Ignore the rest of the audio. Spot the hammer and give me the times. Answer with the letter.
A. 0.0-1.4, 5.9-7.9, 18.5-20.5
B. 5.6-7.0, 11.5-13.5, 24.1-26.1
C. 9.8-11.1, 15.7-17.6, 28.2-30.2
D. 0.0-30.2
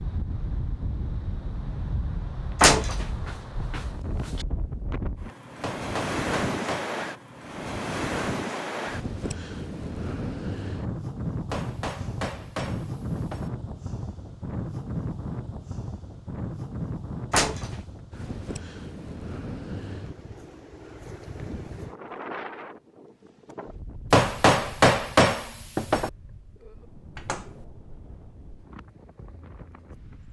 B.